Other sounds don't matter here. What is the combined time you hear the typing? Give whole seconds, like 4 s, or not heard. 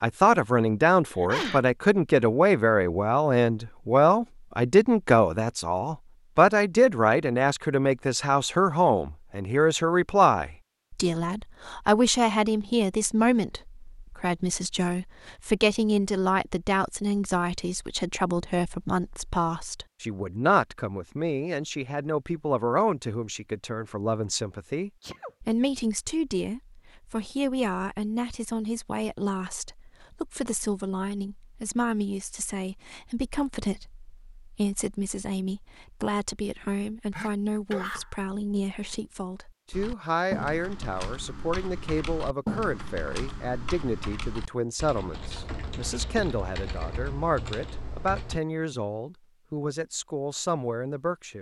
9 s.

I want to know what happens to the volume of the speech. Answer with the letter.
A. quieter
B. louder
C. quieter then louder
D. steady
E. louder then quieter
A.